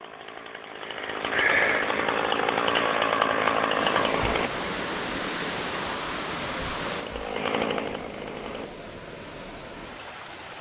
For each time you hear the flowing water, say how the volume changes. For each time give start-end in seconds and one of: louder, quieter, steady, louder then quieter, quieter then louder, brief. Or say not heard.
3.7-10.5 quieter.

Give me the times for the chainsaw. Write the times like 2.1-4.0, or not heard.
0.0-4.5, 6.8-8.7.